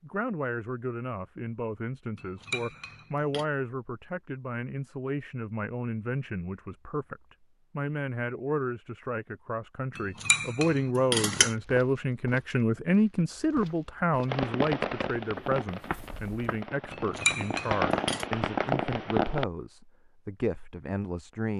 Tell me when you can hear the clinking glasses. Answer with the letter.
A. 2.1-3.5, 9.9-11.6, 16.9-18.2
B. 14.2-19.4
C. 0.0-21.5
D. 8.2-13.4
A.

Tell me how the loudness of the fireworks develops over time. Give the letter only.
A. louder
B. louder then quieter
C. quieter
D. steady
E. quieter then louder
E.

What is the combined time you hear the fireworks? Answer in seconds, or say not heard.
5 s.